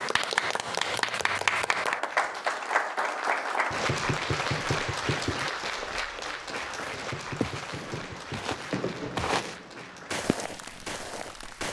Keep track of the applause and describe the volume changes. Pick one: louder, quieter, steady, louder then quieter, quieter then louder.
quieter.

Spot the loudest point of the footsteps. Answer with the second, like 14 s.
9 s.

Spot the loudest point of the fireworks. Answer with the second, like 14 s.
9 s.